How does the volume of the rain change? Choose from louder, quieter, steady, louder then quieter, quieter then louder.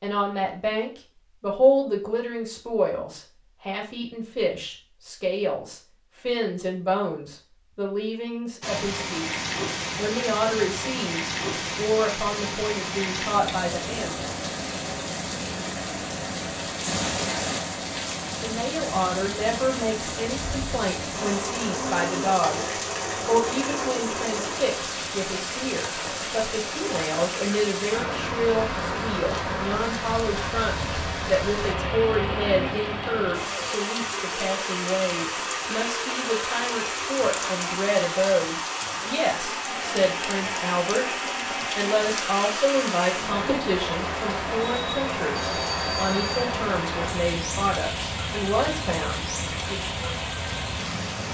steady.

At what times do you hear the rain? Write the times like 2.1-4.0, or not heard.
8.6-51.3.